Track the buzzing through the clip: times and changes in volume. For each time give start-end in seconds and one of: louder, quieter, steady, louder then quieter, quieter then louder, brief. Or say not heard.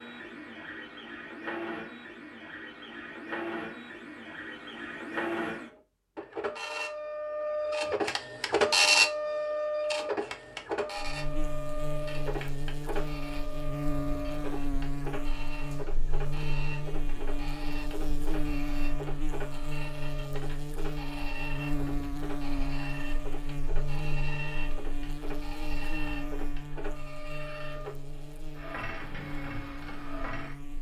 10.9-30.7 quieter.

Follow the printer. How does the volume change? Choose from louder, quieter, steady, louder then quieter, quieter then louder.
louder then quieter.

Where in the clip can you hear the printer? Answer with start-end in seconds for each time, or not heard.
0.0-30.7.